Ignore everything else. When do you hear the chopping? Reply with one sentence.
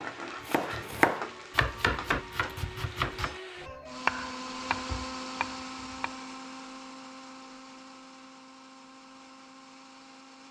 The chopping can be heard from 0.5 to 6.2 s.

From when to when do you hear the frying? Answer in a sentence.
You can hear the frying from 0.0 to 3.4 s.